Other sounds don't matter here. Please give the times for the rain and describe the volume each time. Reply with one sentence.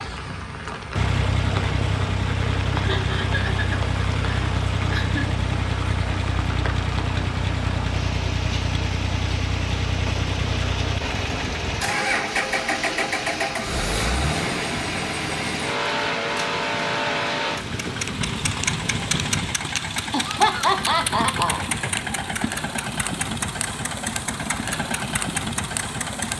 The rain can be heard from 0.0 to 19.4 s, at a steady volume.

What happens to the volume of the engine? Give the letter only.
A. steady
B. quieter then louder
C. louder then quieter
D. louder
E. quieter
A.